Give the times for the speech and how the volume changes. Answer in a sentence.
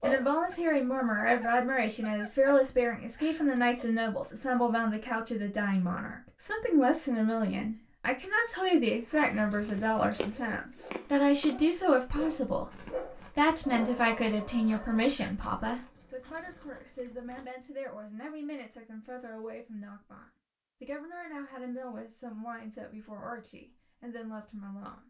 The speech can be heard from 0.0 to 25.0 s, getting quieter.